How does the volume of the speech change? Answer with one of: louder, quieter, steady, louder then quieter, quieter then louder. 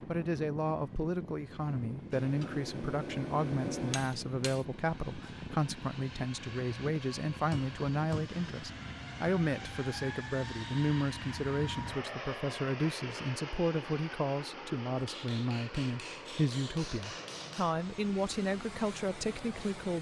steady.